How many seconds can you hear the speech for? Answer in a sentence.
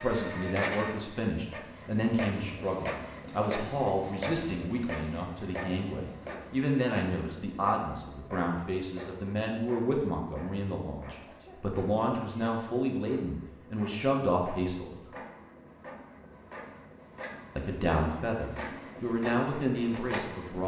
You can hear the speech for 18 seconds altogether.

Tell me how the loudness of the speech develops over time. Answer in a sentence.
The volume of the speech stays about the same.